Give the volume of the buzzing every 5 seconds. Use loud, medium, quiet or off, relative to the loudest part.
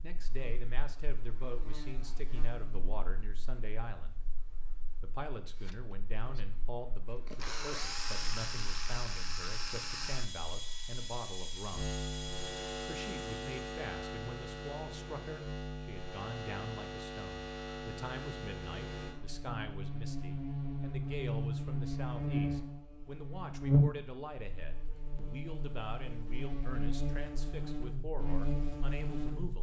quiet, quiet, medium, medium, loud, medium.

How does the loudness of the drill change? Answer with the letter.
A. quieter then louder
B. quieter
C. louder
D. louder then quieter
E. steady
D.